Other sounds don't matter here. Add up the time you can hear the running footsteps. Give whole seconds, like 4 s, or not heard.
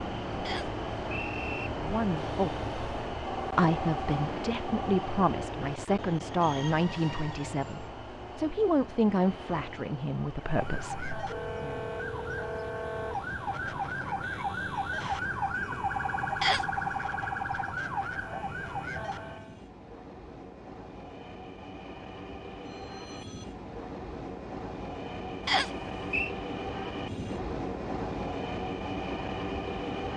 not heard.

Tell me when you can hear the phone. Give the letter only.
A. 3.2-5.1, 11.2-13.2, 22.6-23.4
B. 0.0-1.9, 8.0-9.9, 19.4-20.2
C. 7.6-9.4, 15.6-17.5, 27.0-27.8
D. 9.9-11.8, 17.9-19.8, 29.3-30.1
A.